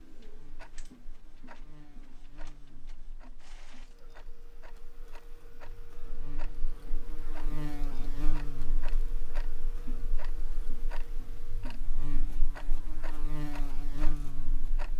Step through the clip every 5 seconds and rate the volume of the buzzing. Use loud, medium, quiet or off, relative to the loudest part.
quiet, loud, loud.